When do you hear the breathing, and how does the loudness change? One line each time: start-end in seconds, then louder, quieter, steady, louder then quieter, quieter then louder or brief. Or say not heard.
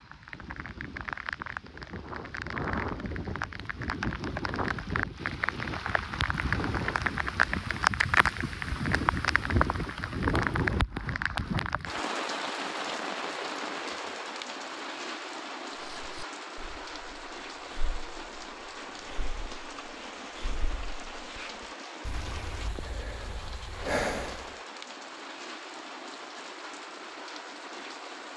15.8-24.6 louder.